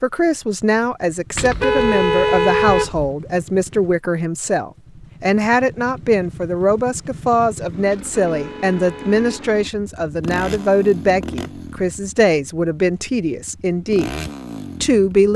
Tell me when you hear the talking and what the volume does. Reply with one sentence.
You can hear the talking from 0.0 to 14.1 s, at a steady volume; and briefly from 14.8 to 15.3 s.